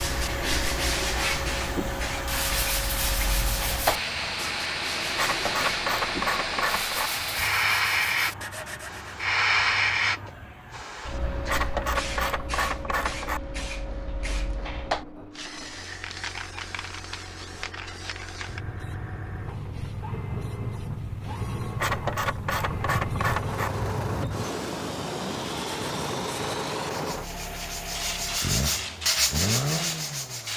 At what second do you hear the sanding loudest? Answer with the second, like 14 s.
29 s.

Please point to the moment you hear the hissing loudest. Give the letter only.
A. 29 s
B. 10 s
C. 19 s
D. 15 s
B.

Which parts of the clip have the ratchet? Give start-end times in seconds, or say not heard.
5.2-7.1, 11.4-13.4, 21.8-23.7.